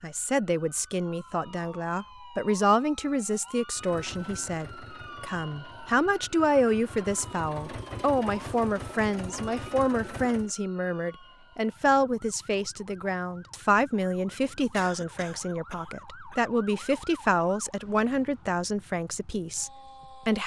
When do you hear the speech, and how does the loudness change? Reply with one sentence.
You can hear the speech from 0.0 to 20.4 s, at a steady volume.